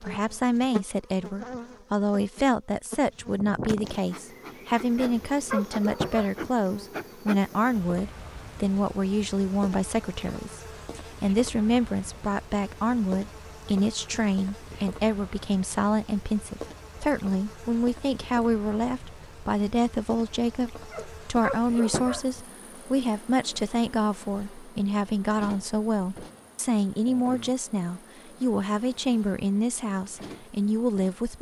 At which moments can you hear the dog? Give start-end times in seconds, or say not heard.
4.9-6.5, 20.9-22.4.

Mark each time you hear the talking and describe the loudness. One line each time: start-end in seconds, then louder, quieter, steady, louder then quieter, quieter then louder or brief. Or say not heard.
0.0-31.3 steady.